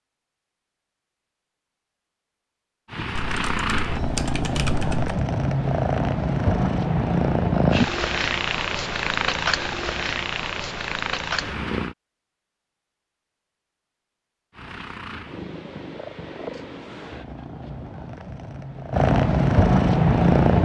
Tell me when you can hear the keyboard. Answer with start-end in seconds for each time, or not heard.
3.1-5.2.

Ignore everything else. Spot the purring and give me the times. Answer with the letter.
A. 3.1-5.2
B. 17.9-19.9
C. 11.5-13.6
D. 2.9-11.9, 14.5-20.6
D.